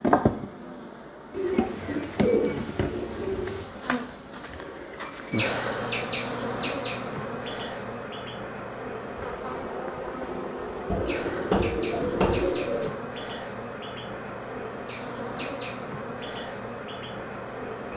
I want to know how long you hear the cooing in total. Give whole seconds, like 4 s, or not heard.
4 s.